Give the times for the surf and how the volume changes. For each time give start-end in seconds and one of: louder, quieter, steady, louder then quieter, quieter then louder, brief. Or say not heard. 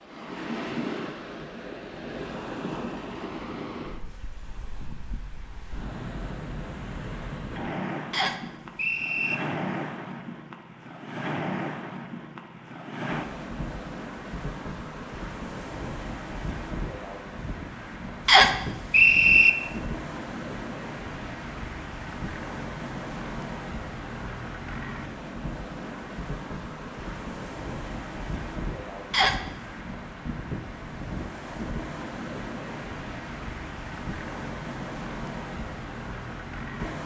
0.0-37.0 steady.